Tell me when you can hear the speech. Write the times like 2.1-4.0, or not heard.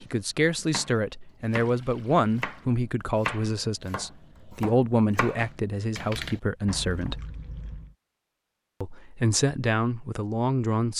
0.0-7.2, 8.8-10.9.